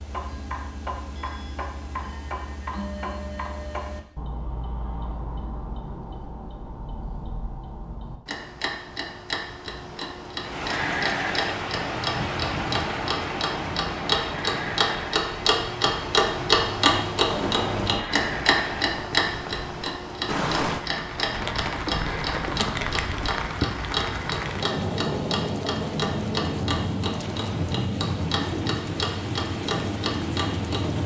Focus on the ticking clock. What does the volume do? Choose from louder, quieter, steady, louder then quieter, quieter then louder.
louder then quieter.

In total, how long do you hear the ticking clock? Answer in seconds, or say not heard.
31 s.